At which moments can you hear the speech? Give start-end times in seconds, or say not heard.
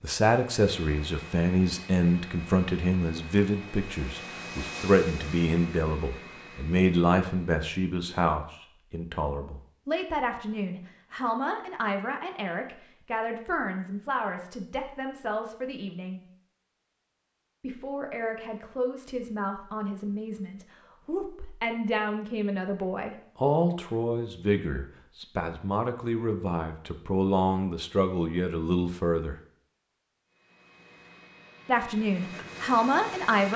0.0-16.2, 17.6-29.4, 31.6-33.5.